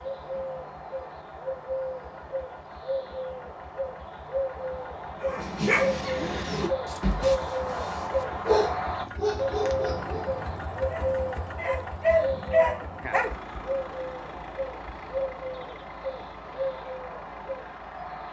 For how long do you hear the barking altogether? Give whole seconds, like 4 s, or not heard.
8 s.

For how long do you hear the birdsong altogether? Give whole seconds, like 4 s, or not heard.
18 s.